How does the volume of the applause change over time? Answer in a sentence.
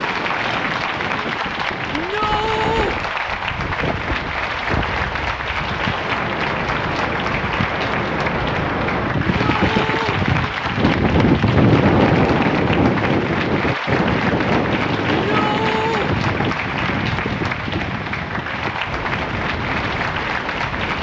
The loudness of the applause stays about the same.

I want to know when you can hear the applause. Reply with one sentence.
The applause can be heard from 0.0 to 20.9 s.